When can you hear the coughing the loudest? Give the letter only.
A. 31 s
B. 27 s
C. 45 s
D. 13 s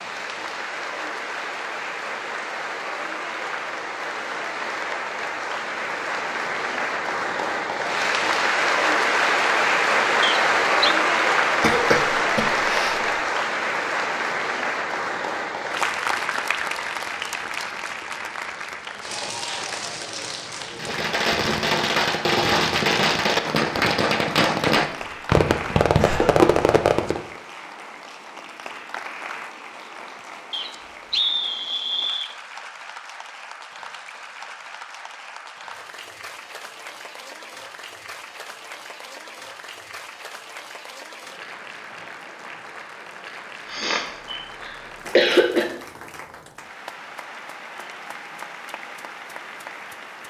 C.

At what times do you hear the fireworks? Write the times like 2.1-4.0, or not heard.
20.7-27.2.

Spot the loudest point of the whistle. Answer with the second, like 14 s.
31 s.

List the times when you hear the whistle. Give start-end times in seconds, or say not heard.
10.2-10.9, 30.5-32.4.